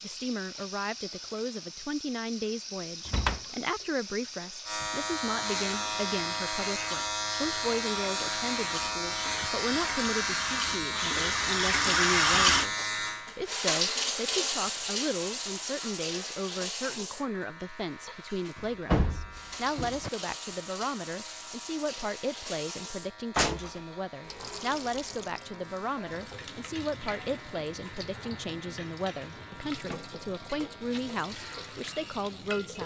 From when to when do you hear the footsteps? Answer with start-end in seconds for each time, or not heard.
not heard.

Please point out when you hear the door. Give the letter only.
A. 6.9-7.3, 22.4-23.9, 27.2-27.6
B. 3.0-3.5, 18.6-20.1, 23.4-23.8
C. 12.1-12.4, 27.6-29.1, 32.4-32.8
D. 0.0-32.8
B.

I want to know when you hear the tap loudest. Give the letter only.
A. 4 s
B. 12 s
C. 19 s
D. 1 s
B.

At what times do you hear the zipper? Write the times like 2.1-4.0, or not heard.
not heard.